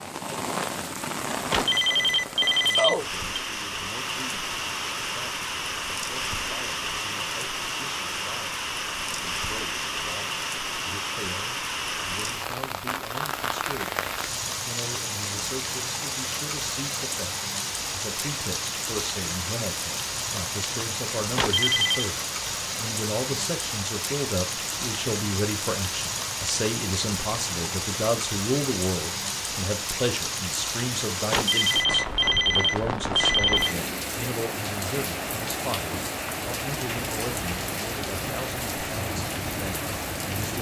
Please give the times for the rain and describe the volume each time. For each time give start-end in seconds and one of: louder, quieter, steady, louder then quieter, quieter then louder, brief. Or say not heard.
0.0-40.5 steady.